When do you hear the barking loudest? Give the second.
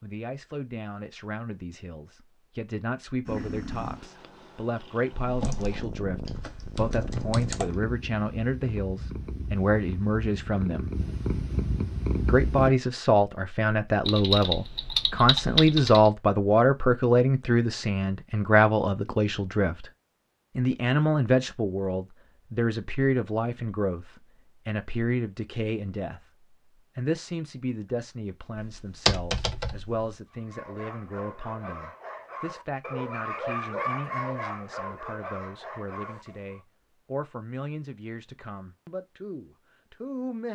34 s.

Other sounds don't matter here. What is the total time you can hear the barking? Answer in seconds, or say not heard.
6 s.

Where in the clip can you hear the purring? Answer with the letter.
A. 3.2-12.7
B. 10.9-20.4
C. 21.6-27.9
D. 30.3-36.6
A.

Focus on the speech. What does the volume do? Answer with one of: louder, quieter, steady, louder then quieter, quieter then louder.
louder then quieter.